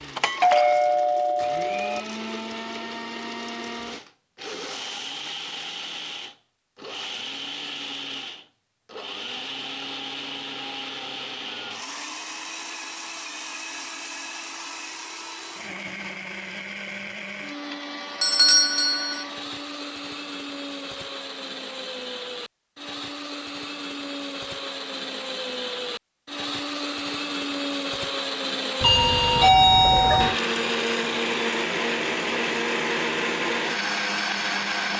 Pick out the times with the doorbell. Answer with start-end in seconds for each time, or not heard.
0.1-2.0, 18.2-19.2, 28.8-30.4.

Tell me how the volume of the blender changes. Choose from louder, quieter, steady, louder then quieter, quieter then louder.
louder.